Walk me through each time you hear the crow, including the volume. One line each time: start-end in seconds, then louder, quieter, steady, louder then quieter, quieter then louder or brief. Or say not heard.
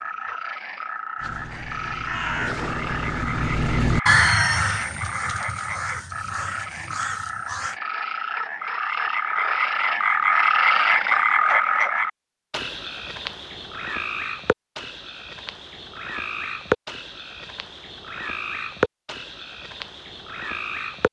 1.1-7.8 louder then quieter.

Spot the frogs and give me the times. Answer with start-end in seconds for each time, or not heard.
0.0-21.0.